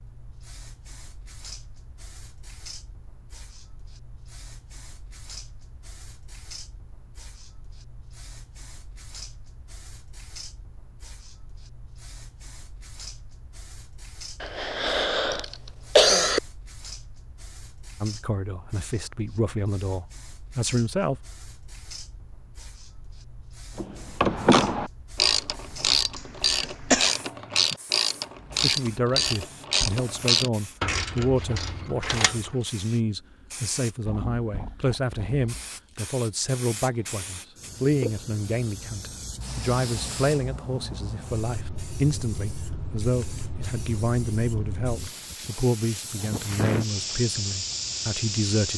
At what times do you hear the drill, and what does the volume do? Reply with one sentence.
You can't hear the drill here.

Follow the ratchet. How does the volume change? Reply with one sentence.
The volume of the ratchet goes down.